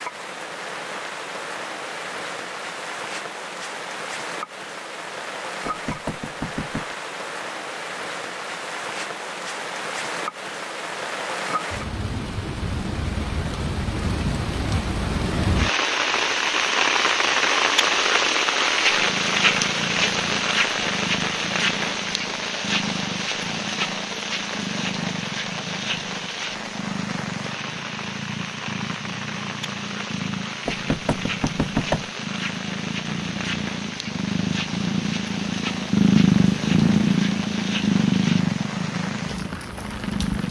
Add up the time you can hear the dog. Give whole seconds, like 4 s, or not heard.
not heard.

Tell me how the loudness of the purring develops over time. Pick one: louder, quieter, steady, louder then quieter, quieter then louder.
louder.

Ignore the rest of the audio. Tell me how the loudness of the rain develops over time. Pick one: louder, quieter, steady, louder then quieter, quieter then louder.
louder then quieter.